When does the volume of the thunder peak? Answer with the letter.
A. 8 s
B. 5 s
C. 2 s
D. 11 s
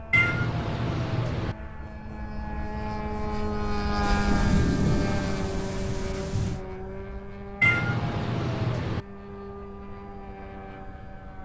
B.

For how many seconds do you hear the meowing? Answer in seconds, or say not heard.
3 s.